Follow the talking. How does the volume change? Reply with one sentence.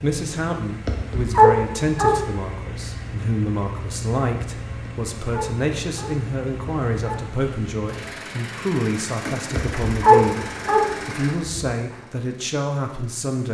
The loudness of the talking stays about the same.